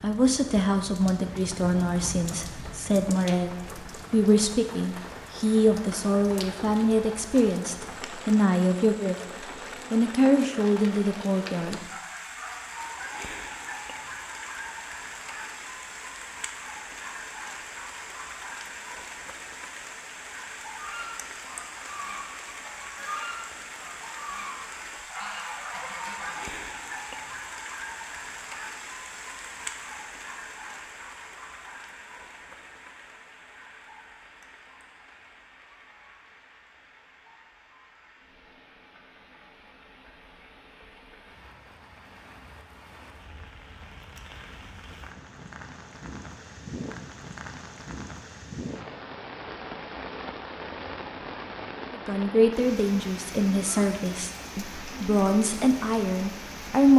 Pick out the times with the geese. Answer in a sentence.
You can hear the geese from 20.7 to 26.5 s.